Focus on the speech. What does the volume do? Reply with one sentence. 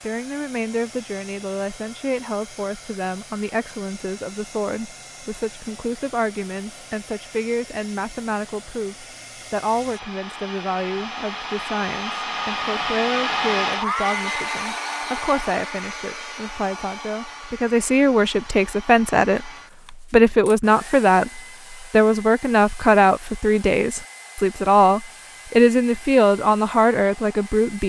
The loudness of the speech goes up.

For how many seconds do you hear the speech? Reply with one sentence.
You can hear the speech for 28 seconds altogether.